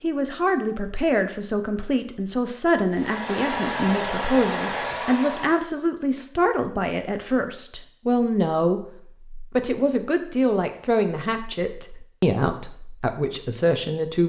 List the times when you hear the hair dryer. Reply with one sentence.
The hair dryer can be heard from 2.9 to 5.7 s.